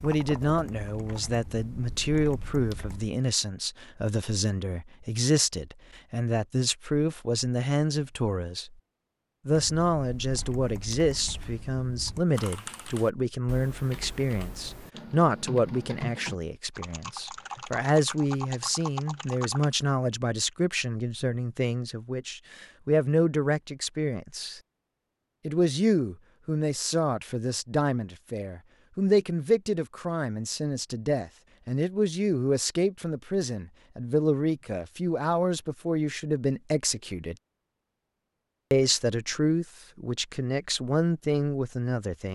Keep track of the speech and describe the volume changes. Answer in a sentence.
The loudness of the speech stays about the same.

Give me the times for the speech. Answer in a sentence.
You can hear the speech from 0.0 to 8.8 s, from 9.4 to 24.6 s, from 25.4 to 37.4 s and from 38.7 to 42.3 s.